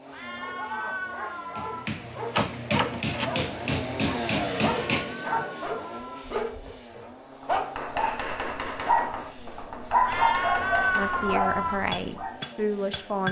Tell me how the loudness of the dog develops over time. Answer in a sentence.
The loudness of the dog goes up.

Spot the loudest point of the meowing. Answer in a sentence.
The volume of the meowing peaks at 11 seconds.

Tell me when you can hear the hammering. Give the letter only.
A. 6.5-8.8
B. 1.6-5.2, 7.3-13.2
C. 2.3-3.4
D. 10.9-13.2
B.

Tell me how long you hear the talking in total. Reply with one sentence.
The talking can be heard for 2 seconds in total.